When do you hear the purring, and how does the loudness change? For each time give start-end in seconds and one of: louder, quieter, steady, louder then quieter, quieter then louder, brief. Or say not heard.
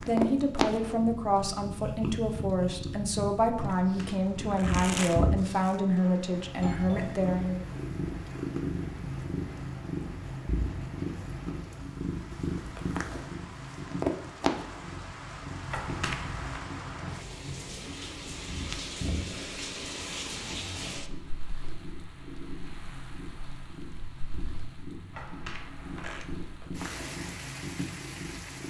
0.0-28.6 quieter.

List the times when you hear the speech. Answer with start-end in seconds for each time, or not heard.
0.0-7.7.